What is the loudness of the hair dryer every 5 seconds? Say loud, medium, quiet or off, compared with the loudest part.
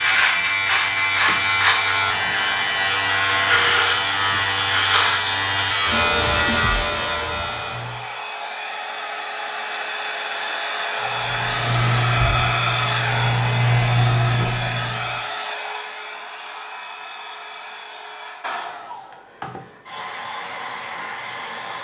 medium, medium, loud, medium, medium.